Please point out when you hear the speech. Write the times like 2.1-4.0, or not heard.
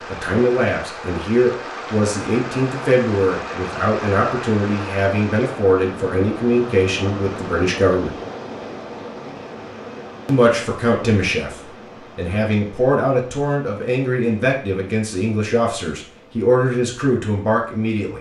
0.1-8.2, 10.2-18.1.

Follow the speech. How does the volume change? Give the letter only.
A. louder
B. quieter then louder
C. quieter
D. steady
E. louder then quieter
D.